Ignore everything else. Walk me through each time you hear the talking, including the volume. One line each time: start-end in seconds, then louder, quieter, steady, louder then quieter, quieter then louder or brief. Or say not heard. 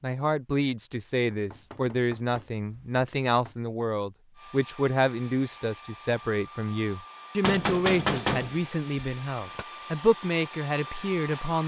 0.0-11.6 steady.